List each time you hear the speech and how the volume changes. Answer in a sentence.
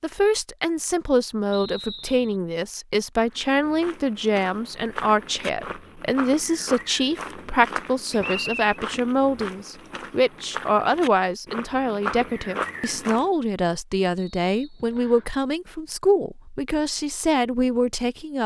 The speech can be heard from 0.0 to 18.4 s, at a steady volume.